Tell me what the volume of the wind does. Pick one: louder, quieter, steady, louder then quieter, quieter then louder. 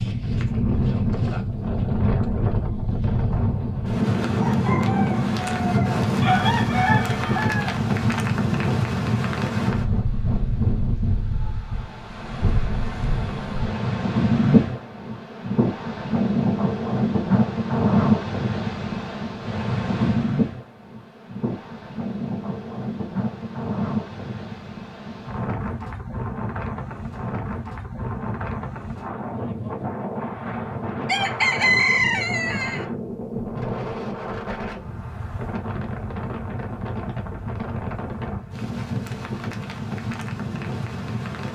quieter.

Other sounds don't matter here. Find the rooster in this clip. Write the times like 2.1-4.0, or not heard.
4.4-7.8, 31.1-32.9.